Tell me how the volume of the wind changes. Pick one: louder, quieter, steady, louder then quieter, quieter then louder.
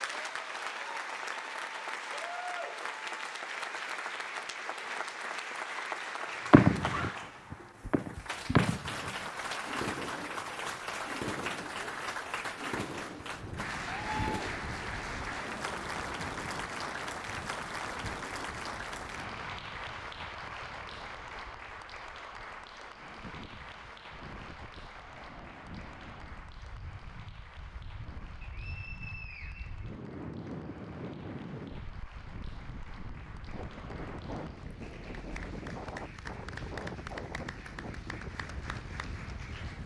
quieter then louder.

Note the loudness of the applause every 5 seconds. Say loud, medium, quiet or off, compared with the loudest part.
loud, loud, loud, loud, medium, quiet, quiet, medium.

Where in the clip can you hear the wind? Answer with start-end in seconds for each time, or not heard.
13.3-39.8.